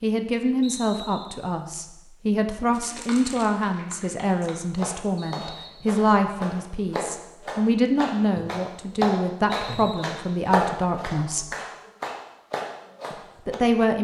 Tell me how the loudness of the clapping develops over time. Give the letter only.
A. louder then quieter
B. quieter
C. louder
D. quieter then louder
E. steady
A.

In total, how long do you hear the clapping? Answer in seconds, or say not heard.
11 s.